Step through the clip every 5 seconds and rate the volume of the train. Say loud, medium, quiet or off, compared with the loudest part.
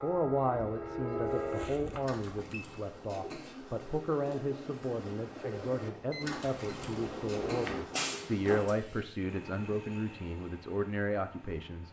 loud, loud, quiet.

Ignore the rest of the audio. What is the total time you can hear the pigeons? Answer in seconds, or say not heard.
7 s.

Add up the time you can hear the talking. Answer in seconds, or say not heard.
12 s.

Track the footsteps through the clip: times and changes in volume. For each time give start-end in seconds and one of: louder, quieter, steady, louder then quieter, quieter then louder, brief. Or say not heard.
not heard.